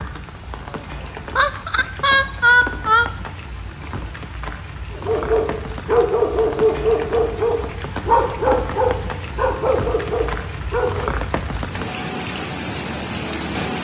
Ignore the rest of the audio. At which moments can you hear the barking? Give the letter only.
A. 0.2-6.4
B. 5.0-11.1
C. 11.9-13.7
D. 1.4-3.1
B.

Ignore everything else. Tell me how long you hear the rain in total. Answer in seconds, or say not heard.
14 s.